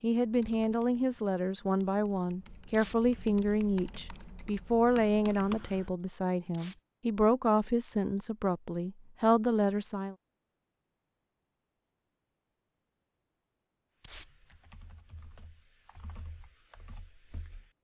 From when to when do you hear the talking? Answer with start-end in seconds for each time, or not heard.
0.0-10.2.